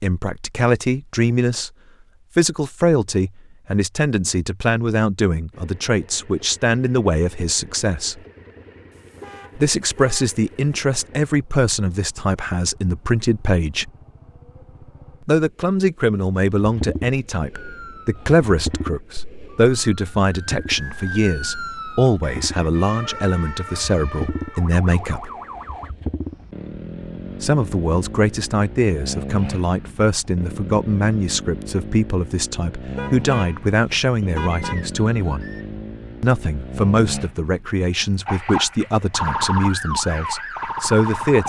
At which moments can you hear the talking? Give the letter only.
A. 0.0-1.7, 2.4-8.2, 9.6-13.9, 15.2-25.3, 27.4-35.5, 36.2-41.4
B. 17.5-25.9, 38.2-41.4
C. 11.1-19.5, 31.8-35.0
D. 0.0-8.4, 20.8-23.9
A.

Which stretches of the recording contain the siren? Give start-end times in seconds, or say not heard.
17.5-25.9, 38.2-41.4.